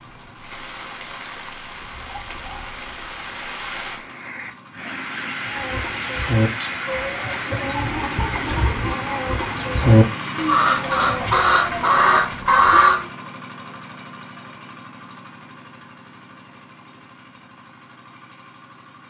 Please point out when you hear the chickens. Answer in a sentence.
The chickens can be heard from 5.5 to 13.0 s.